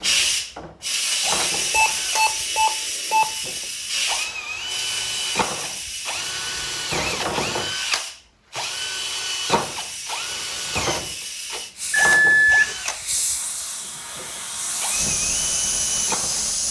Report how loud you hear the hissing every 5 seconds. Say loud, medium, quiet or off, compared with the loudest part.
loud, medium, medium, loud.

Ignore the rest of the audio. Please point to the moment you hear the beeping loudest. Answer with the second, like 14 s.
12 s.